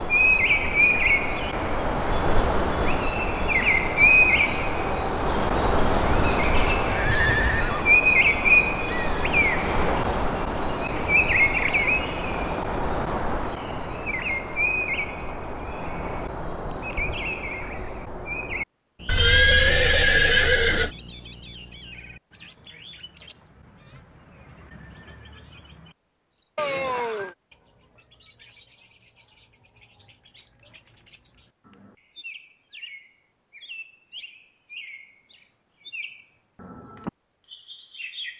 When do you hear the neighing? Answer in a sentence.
The neighing can be heard from 6.0 to 8.0 s, from 19.1 to 20.9 s and from 26.6 to 27.4 s.